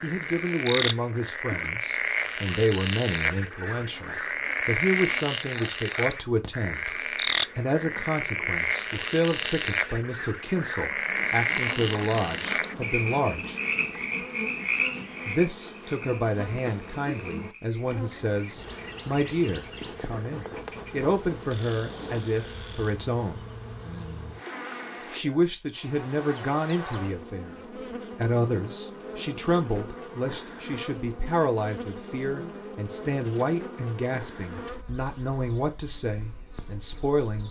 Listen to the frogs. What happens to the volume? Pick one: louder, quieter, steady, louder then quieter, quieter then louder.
quieter.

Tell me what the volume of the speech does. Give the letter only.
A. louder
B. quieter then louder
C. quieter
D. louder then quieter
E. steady
E.